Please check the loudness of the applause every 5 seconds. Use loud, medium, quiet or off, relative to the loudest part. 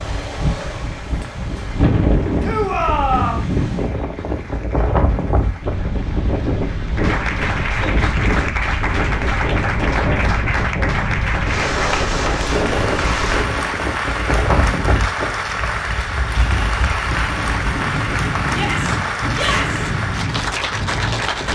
quiet, loud, loud, loud, loud.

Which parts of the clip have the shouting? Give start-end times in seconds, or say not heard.
2.4-3.5, 18.5-19.9.